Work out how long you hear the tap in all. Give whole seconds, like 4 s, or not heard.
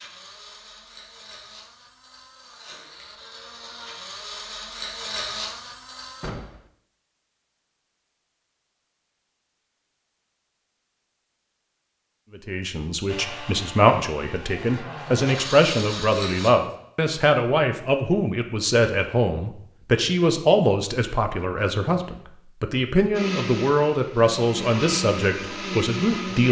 not heard.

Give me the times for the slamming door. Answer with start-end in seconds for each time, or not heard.
6.2-6.7.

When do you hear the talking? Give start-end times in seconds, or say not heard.
12.3-26.4.